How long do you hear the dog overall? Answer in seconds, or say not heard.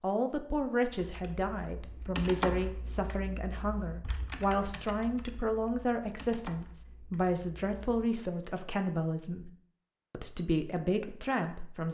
not heard.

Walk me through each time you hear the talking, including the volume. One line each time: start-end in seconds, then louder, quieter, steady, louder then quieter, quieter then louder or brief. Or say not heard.
0.0-9.5 steady
10.1-11.8 brief.